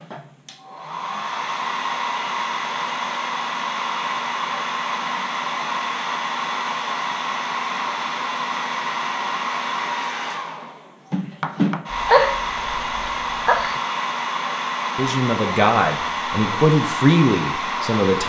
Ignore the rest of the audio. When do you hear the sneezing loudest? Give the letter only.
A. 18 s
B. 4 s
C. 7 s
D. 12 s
D.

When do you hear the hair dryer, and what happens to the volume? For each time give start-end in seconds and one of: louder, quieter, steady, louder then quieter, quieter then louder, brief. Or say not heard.
0.0-18.2 steady.